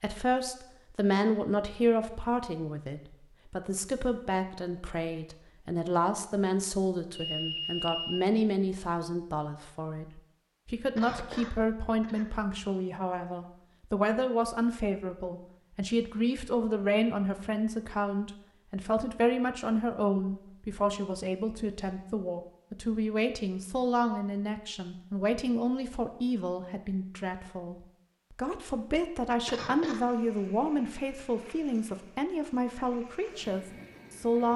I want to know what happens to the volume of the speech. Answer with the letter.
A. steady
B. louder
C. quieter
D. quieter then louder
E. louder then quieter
A.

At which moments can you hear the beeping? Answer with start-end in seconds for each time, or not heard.
7.2-8.2.